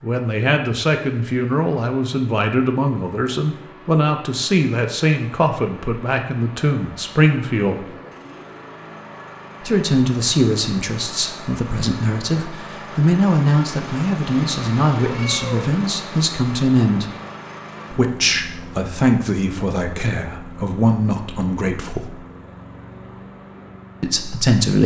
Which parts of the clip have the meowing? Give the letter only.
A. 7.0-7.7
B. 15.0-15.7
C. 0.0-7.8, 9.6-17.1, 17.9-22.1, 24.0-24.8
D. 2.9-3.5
B.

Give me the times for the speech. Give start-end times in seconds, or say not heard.
0.0-7.8, 9.6-17.1, 17.9-22.1, 24.0-24.8.